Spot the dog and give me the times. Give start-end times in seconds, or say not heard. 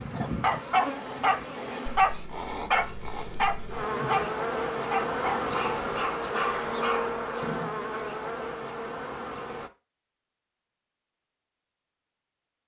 0.1-7.8.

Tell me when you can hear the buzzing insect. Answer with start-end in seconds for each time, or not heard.
0.0-9.7.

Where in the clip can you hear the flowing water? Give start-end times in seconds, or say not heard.
not heard.